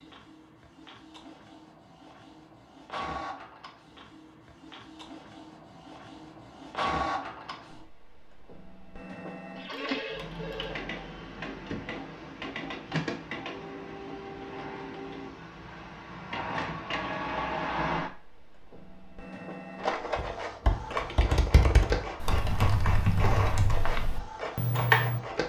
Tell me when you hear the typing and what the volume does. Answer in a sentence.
You can hear the typing from 20.1 to 25.2 s, at a steady volume.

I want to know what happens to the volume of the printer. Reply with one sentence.
The loudness of the printer goes up.